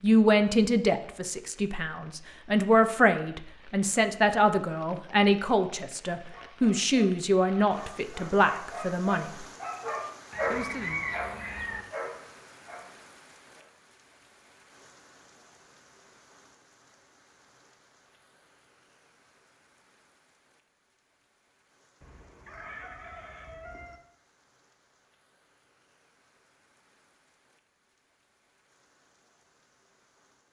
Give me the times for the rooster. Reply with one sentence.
The rooster can be heard from 10.3 to 11.8 s and from 22.0 to 24.0 s.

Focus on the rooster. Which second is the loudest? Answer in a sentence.
The volume of the rooster peaks at 11 seconds.